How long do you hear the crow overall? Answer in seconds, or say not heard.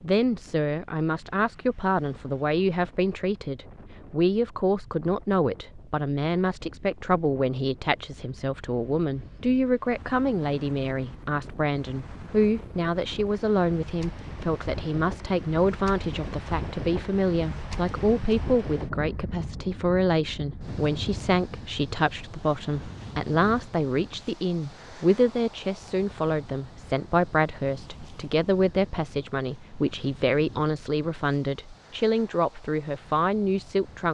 not heard.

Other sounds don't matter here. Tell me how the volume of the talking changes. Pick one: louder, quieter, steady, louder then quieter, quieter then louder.
steady.